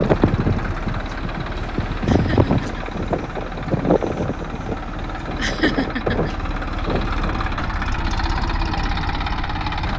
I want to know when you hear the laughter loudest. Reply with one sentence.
The loudest moment of the laughter is at 6 seconds.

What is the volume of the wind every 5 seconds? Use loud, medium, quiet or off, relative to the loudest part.
loud, medium.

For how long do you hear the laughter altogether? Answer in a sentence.
You can hear the laughter for 2 seconds altogether.